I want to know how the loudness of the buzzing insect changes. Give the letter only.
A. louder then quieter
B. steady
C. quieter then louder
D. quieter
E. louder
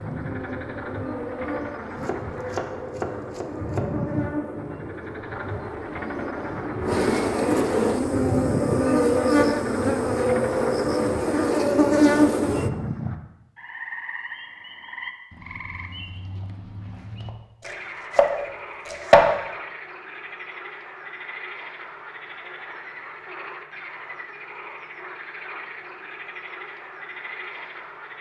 E.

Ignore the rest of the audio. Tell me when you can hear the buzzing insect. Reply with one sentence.
The buzzing insect can be heard from 0.0 to 12.7 s.